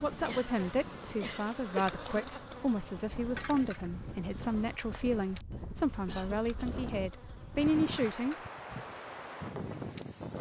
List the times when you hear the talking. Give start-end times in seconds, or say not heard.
0.0-8.3.